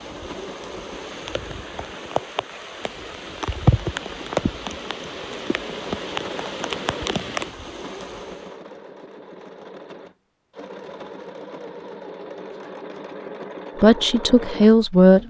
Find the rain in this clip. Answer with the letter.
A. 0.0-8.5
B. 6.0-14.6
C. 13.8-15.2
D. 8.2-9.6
A.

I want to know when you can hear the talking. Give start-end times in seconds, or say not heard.
13.8-15.2.